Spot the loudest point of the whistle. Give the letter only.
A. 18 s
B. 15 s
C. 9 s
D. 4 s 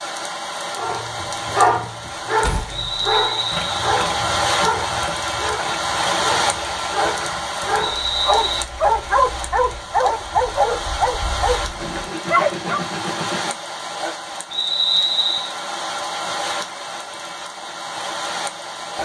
B.